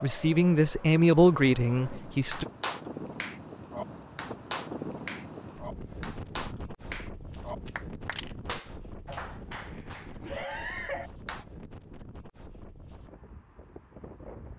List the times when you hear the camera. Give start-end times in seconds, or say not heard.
7.3-8.3.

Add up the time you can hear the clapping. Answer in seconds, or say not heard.
9 s.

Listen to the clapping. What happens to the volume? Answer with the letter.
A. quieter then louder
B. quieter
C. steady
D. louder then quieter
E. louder
C.